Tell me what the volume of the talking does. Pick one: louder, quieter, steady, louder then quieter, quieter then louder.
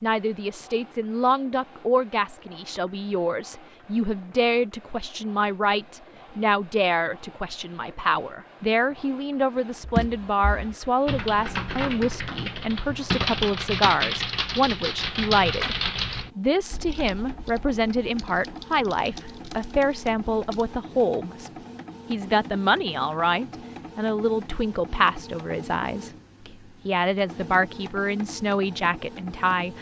steady.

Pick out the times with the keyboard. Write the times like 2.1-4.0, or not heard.
9.8-20.7.